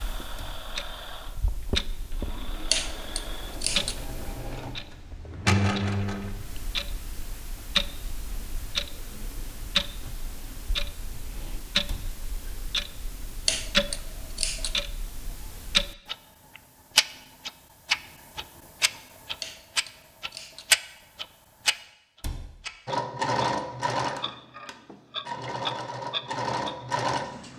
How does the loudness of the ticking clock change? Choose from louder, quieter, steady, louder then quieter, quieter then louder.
louder.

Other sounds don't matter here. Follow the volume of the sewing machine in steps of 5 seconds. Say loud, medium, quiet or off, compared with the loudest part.
quiet, loud, off, off, loud, loud.